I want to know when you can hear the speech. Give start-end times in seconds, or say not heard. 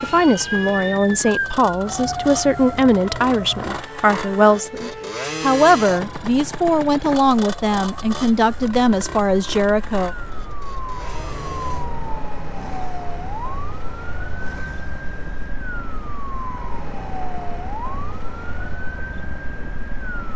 0.0-10.1.